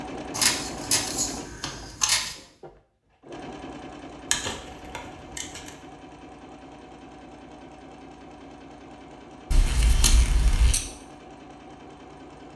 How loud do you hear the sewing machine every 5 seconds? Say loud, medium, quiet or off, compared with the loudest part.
loud, medium, medium.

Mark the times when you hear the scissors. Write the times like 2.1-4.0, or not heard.
0.3-2.4, 4.3-5.7, 9.5-10.8.